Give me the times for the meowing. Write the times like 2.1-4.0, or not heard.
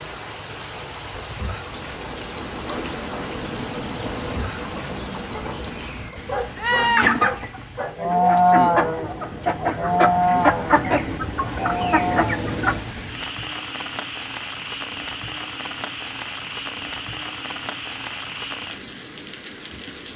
not heard.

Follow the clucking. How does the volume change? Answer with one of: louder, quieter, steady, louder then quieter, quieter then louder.
louder.